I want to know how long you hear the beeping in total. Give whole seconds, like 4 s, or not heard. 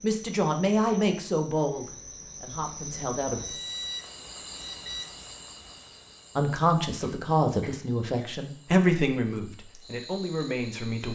2 s.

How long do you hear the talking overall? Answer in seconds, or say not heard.
8 s.